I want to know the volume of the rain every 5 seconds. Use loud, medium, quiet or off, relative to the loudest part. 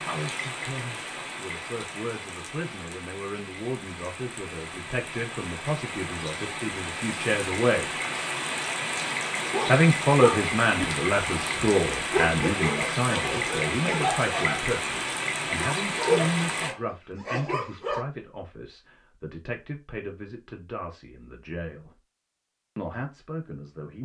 medium, loud, loud, loud, off.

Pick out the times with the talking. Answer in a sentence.
The talking can be heard from 0.0 to 7.9 s, from 9.7 to 21.9 s and from 22.8 to 24.0 s.